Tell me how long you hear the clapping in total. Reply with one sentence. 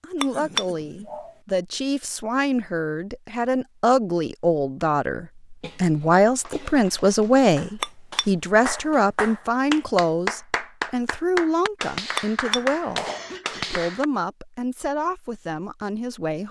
The clapping can be heard for 8 seconds in total.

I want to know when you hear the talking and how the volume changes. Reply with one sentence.
You can hear the talking from 0.0 to 13.1 s, getting louder then quieter; and briefly from 13.7 to 16.4 s.